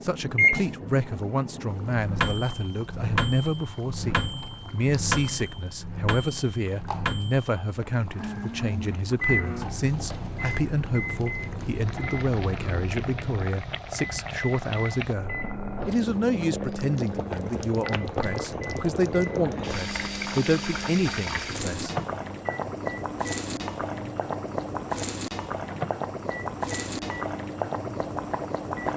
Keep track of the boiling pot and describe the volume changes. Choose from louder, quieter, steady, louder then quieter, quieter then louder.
louder.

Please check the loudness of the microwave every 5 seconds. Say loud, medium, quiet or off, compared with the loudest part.
loud, loud, medium, medium, medium, medium.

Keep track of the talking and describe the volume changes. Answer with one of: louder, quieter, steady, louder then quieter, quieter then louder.
steady.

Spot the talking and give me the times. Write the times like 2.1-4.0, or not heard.
0.0-21.9.